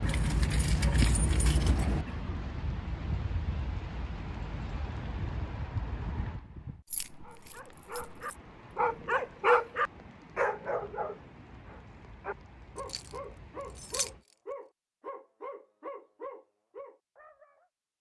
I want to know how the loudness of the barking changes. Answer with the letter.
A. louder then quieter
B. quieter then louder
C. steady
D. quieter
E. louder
D.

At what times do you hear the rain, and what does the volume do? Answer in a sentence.
The rain can be heard from 0.0 to 14.2 s, getting quieter.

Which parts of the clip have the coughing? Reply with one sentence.
The coughing can be heard from 2.0 to 2.5 s.